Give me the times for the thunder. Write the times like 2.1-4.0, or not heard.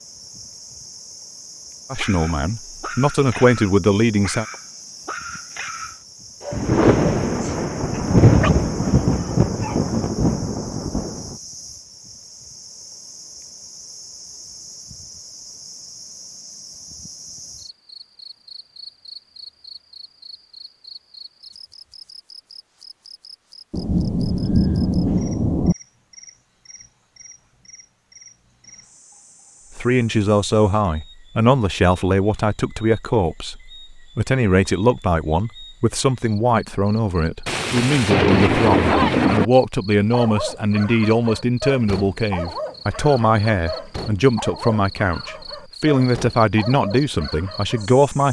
6.5-11.3, 23.7-25.8, 37.5-39.5.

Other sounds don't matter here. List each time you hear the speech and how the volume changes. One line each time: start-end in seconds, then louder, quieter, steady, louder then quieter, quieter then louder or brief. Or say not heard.
1.9-4.5 brief
29.8-48.2 steady.